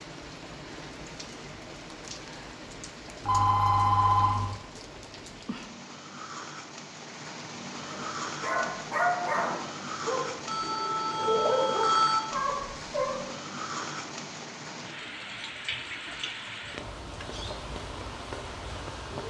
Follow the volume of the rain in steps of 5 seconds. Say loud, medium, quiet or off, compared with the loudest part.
medium, loud, loud, loud.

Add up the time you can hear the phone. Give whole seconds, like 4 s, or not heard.
3 s.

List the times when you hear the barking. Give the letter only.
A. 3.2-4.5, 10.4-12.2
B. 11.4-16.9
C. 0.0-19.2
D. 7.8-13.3
D.